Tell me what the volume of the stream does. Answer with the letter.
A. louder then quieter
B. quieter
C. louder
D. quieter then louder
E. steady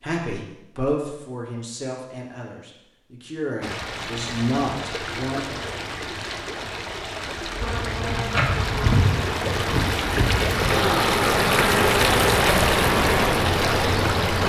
C.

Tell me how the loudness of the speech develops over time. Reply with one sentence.
The volume of the speech goes down, then up.